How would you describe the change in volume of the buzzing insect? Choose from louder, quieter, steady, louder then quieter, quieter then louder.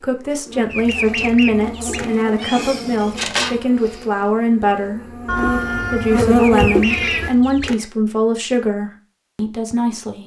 quieter then louder.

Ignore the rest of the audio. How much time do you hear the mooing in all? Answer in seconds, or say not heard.
not heard.